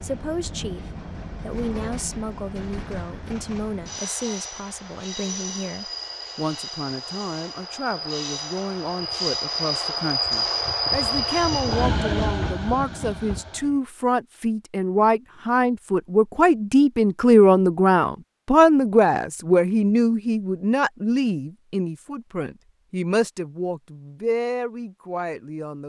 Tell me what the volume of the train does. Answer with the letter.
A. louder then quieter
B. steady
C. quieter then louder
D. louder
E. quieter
D.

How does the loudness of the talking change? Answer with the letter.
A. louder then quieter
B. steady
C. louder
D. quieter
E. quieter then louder
A.